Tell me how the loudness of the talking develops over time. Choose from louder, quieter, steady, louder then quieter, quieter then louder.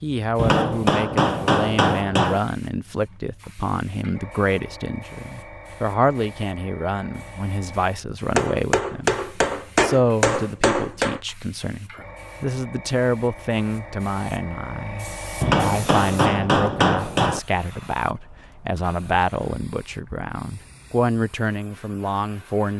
steady.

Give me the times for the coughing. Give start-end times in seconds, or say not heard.
not heard.